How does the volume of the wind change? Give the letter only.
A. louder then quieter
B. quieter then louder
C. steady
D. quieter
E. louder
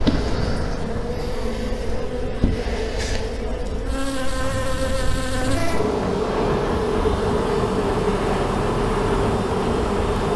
B.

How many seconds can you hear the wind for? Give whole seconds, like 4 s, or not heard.
10 s.